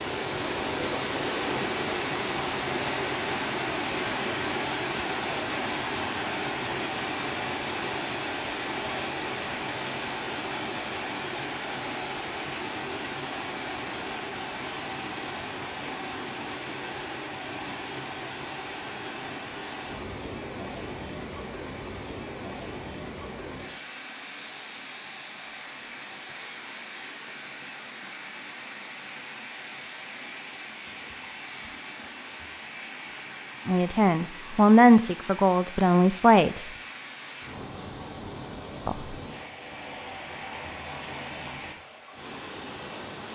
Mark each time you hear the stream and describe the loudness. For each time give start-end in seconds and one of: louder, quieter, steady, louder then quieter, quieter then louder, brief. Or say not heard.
0.0-43.2 quieter.